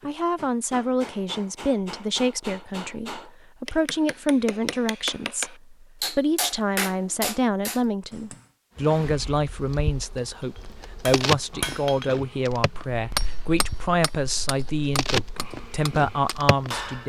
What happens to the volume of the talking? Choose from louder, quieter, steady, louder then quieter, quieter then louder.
steady.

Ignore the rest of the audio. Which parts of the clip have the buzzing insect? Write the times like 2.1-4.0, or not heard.
8.8-17.0.